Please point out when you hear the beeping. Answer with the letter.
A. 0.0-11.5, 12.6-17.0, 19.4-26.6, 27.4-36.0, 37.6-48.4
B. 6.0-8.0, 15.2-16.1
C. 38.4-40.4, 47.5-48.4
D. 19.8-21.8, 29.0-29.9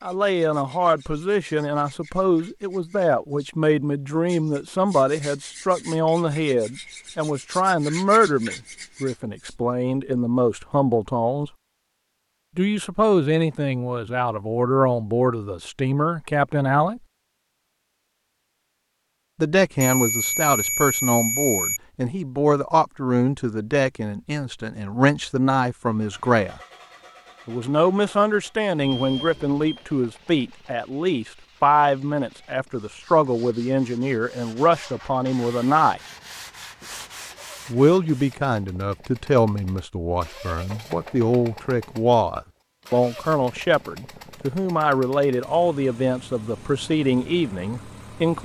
D.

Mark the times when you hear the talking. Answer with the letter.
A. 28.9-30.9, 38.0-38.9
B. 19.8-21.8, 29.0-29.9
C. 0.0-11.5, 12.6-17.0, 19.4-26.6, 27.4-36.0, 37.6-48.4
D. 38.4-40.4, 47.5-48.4
C.